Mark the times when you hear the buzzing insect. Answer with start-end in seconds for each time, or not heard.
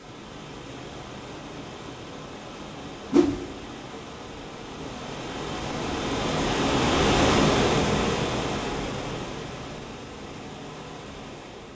not heard.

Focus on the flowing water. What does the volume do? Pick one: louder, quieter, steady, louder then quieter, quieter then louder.
louder then quieter.